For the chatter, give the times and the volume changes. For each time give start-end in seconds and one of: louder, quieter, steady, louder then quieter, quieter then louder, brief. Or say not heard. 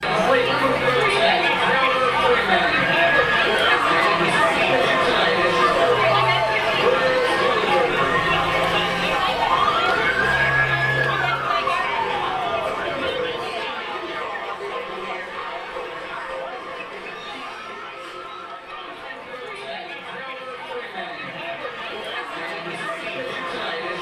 0.0-23.9 quieter.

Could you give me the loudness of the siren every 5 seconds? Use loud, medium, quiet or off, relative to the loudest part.
loud, loud, loud, off, off.